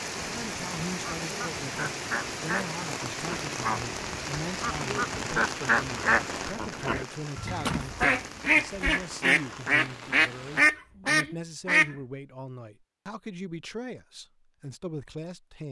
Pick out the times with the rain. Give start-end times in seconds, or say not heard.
0.0-10.7.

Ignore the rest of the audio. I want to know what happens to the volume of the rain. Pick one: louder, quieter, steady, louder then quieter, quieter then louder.
quieter.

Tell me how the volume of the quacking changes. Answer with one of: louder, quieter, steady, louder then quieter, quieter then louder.
louder.